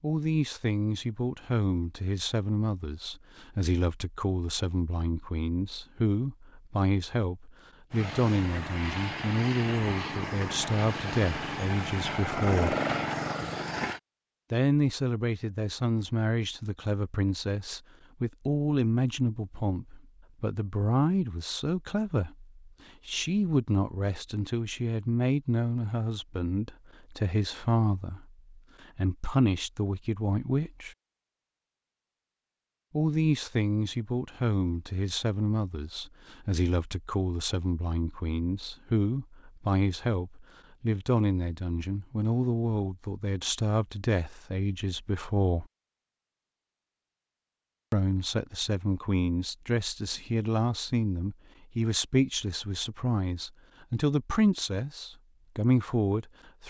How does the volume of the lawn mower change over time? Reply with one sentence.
The loudness of the lawn mower goes up.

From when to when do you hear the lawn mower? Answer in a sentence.
The lawn mower can be heard from 7.9 to 14.0 s.